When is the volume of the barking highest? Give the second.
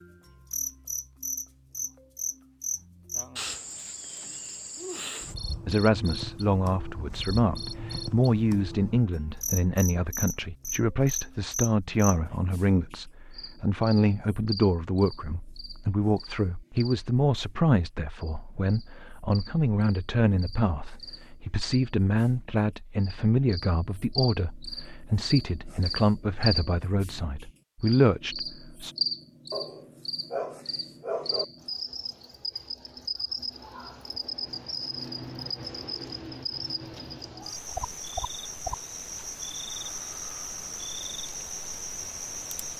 31 s.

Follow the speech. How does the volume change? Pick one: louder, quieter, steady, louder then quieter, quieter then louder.
steady.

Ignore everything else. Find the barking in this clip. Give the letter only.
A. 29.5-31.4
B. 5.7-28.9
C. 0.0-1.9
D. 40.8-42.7
A.